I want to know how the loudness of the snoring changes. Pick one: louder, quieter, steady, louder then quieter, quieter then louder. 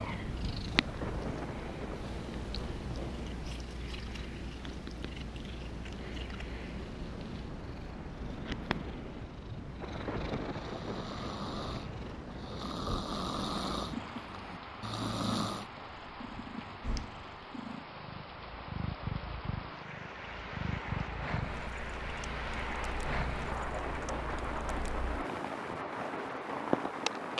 quieter then louder.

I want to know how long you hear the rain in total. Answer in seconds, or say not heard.
27 s.